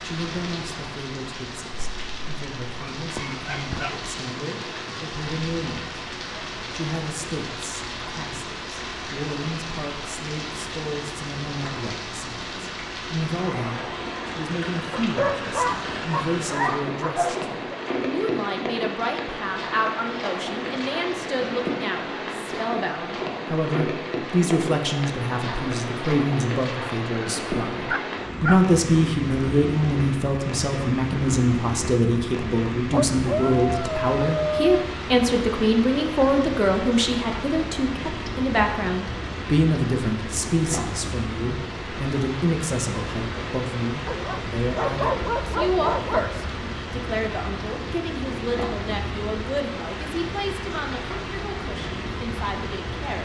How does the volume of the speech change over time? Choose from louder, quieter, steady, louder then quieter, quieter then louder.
louder then quieter.